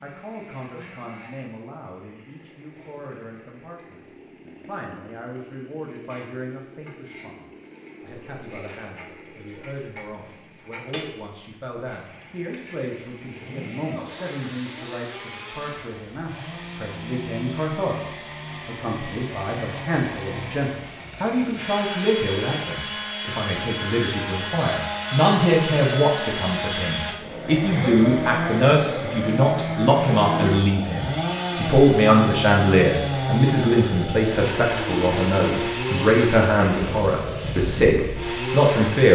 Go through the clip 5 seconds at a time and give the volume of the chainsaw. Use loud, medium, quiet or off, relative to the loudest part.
quiet, quiet, quiet, medium, medium, loud, loud, loud.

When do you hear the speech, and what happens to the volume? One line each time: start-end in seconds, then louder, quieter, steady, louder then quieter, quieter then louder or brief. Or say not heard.
0.0-39.1 louder.